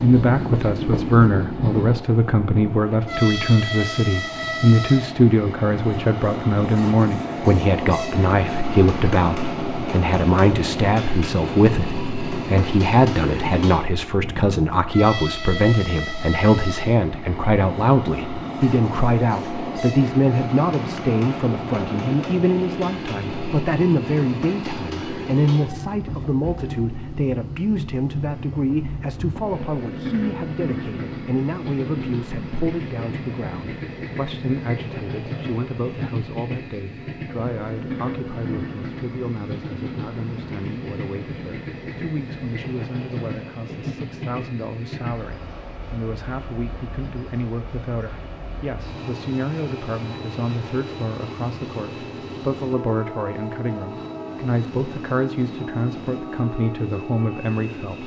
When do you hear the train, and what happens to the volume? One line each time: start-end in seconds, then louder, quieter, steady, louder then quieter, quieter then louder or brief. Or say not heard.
0.0-58.0 quieter.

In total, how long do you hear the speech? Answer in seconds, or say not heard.
58 s.